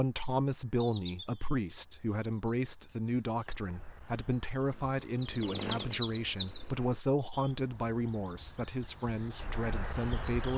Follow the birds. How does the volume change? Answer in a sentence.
The volume of the birds goes up.